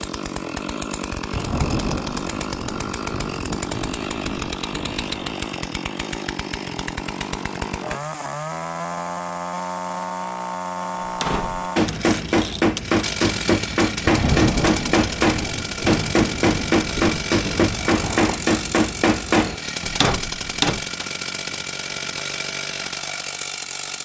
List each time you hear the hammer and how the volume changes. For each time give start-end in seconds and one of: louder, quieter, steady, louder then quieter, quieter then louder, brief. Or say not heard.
11.1-21.1 steady.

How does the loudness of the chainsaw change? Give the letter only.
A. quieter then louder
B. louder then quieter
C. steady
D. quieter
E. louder
C.